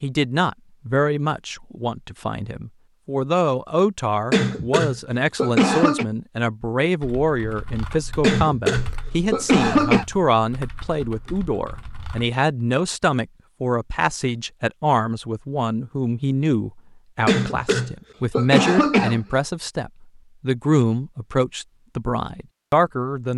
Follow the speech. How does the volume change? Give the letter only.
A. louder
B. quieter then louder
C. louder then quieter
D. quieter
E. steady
E.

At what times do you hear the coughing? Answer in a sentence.
You can hear the coughing from 4.3 to 6.0 s, from 8.2 to 10.1 s and from 17.2 to 19.2 s.